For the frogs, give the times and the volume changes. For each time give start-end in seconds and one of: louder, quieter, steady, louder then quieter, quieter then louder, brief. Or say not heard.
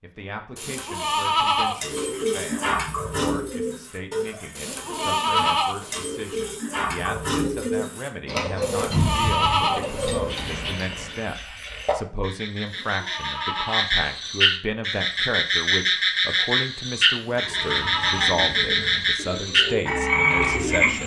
10.2-20.9 louder.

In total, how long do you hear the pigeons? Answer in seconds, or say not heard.
13 s.